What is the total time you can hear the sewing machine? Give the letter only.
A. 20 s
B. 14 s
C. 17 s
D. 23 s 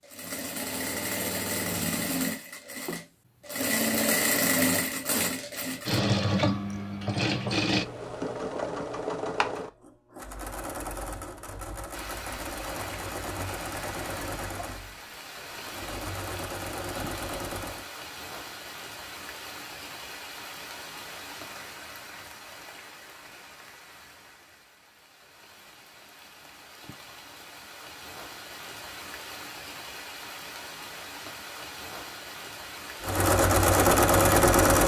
A.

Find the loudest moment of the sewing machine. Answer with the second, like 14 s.
34 s.